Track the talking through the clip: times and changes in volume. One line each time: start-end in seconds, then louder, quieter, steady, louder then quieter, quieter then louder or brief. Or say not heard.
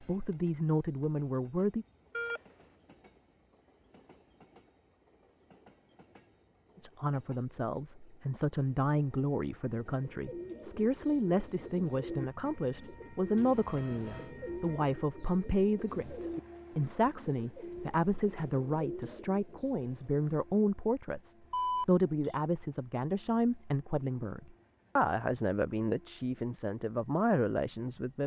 0.0-1.9 brief
6.8-28.2 steady.